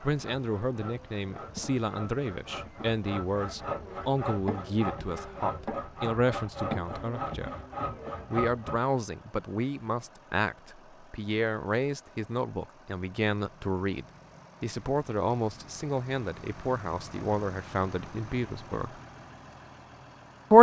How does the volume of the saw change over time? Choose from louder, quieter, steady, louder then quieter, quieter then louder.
louder.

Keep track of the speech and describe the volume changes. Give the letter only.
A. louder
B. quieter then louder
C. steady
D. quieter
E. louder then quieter
A.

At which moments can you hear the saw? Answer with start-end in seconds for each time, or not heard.
0.0-8.8.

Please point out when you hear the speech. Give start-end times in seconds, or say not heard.
0.0-7.5, 8.3-19.0.